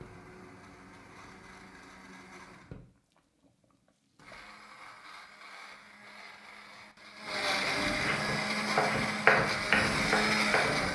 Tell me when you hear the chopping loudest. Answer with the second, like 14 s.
9 s.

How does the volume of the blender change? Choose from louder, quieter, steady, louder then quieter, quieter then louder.
louder.